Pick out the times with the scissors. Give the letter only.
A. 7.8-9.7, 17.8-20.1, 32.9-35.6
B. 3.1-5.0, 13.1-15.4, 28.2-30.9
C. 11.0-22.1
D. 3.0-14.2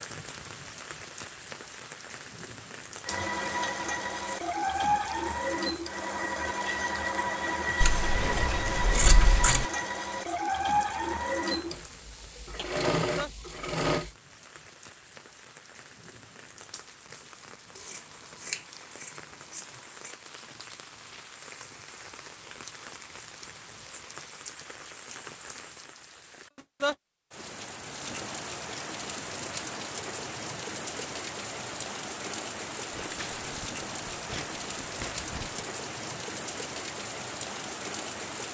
A.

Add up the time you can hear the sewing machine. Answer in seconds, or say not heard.
11 s.